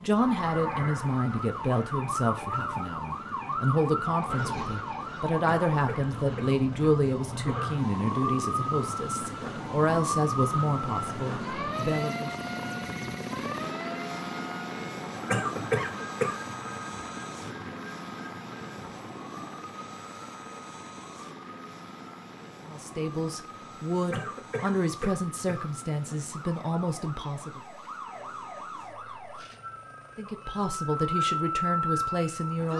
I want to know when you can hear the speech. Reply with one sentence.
The speech can be heard from 0.0 to 12.3 s, from 22.6 to 27.6 s and from 30.1 to 32.7 s.